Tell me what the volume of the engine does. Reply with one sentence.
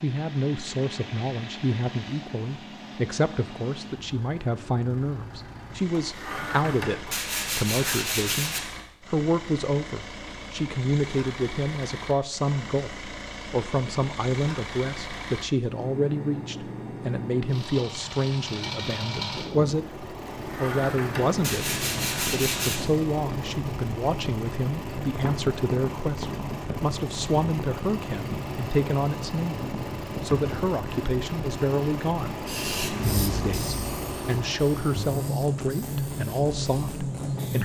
The loudness of the engine goes up.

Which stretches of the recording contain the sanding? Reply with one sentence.
You can hear the sanding from 6.0 to 8.6 s and from 20.4 to 22.8 s.